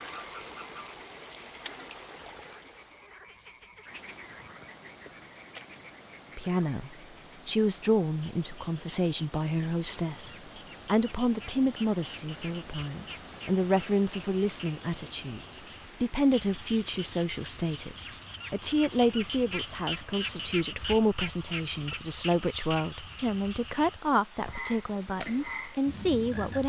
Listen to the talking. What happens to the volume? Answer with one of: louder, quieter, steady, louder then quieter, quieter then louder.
steady.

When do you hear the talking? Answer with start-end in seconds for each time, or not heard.
6.3-26.6.